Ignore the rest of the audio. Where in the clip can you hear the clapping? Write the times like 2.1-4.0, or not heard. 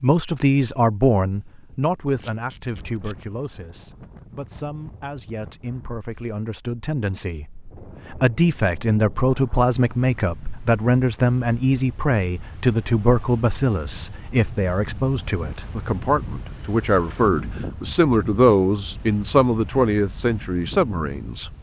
not heard.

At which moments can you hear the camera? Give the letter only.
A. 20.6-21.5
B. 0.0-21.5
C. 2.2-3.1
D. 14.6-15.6
C.